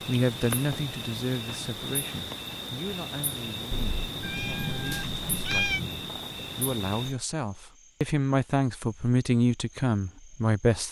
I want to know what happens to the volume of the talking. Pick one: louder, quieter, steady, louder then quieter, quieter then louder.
quieter then louder.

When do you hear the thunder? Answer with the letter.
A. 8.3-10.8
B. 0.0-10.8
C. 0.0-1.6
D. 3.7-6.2
D.